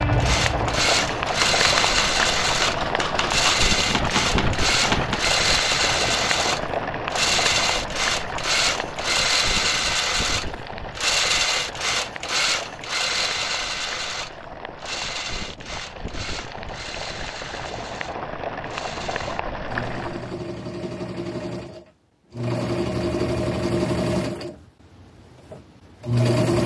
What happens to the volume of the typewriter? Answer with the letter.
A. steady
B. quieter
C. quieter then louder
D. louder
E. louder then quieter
D.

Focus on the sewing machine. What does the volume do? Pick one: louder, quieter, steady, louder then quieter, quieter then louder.
quieter then louder.